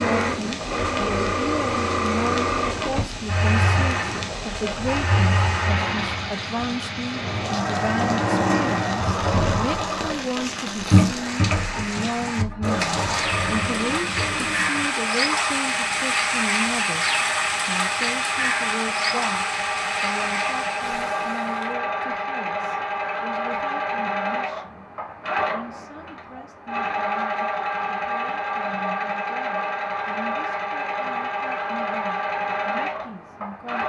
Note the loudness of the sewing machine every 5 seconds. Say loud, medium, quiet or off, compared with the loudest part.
loud, loud, loud, medium, loud, loud, loud.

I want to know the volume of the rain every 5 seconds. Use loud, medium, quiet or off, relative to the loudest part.
medium, medium, loud, loud, medium, off, off.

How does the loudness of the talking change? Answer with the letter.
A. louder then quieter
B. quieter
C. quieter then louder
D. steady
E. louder
B.